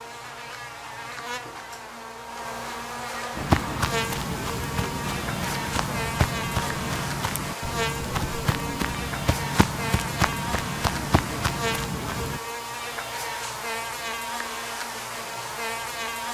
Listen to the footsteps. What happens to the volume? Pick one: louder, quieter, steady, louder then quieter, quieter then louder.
steady.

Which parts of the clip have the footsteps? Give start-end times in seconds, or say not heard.
3.4-12.4.